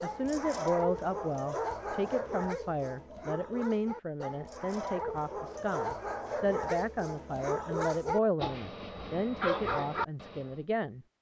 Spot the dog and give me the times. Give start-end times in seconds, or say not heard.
0.0-10.6.